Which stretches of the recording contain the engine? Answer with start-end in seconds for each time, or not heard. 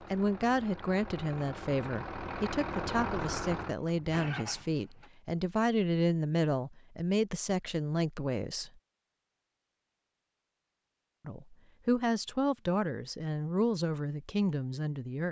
0.0-5.1.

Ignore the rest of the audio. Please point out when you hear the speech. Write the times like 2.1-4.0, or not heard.
0.0-8.7, 11.2-15.2.